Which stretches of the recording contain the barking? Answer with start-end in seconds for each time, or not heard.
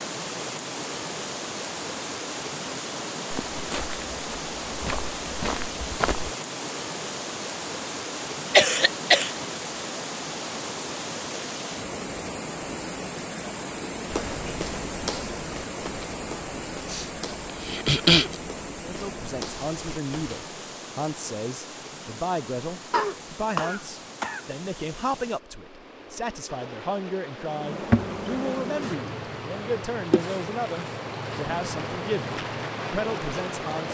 not heard.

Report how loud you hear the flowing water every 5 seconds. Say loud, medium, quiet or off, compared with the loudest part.
loud, loud, loud, loud, medium, medium, loud.